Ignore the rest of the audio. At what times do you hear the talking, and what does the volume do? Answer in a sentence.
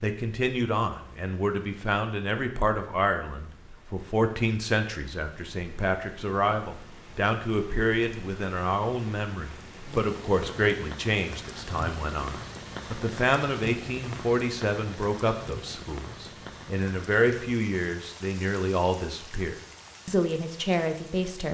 The talking can be heard from 0.0 to 21.4 s, at a steady volume.